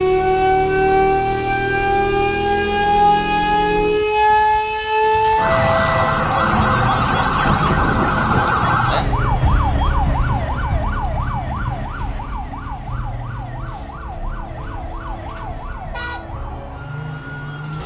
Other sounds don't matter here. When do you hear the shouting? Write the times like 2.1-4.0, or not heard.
not heard.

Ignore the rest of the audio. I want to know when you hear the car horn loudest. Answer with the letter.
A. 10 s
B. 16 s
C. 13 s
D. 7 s
B.